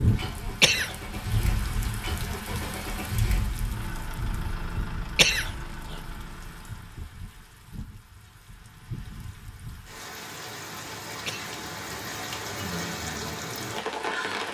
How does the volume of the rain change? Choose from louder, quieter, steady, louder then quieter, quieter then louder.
quieter then louder.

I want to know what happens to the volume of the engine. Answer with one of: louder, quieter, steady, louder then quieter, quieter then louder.
quieter.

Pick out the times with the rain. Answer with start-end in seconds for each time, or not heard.
0.0-14.5.